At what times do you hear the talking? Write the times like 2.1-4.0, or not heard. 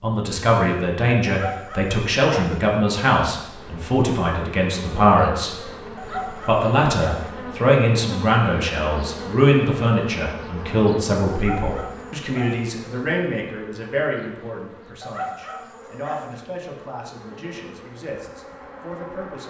0.0-19.4.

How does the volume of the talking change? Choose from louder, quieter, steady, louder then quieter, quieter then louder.
quieter.